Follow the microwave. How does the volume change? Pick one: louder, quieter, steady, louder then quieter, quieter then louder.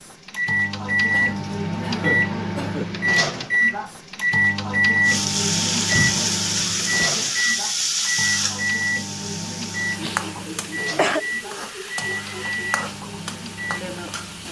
quieter.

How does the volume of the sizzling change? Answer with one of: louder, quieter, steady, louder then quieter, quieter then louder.
quieter.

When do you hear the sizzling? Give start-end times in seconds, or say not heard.
5.0-14.4.